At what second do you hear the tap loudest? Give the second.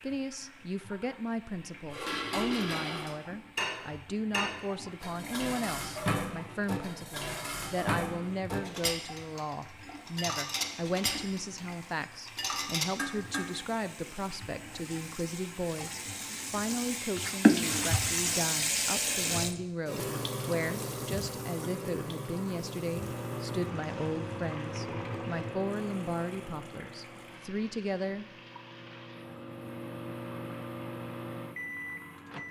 18 s.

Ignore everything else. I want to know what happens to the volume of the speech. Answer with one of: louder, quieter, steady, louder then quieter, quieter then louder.
steady.